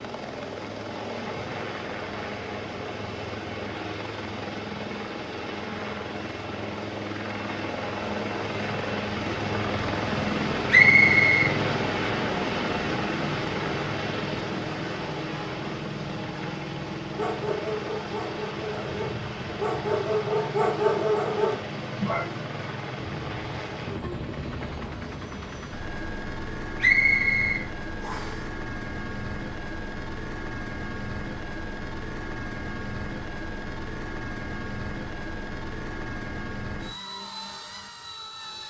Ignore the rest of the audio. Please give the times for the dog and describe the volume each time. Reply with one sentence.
You can hear the dog from 17.1 to 22.2 s, getting louder.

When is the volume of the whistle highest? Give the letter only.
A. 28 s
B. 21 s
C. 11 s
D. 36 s
C.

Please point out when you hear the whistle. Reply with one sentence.
You can hear the whistle from 10.7 to 11.6 s and from 26.8 to 28.4 s.